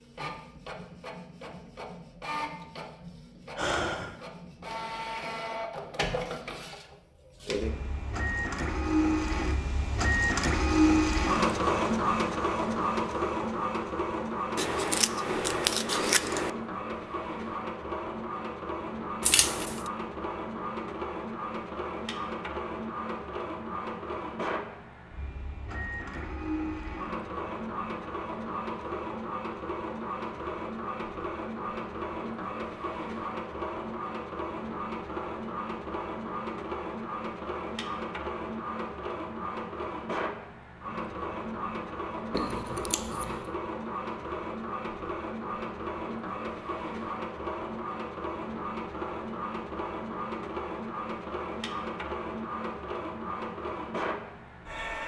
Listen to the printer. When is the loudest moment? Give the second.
11 s.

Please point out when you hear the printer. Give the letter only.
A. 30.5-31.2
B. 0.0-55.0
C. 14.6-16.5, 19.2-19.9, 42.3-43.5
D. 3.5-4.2
B.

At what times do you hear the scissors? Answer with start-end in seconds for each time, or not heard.
14.6-16.5, 19.2-19.9, 42.3-43.5.